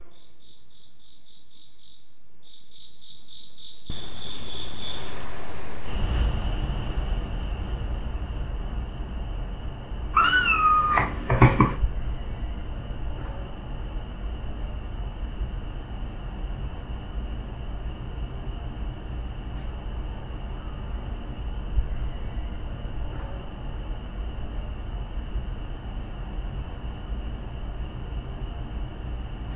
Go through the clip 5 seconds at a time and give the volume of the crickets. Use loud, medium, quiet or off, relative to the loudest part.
loud, loud, medium, medium, medium, medium.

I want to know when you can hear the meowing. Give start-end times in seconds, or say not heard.
10.2-11.8.